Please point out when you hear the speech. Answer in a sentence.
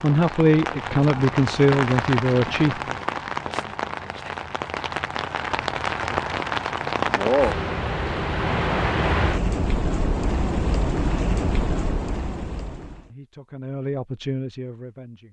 The speech can be heard from 0.0 to 2.9 s and from 13.1 to 15.2 s.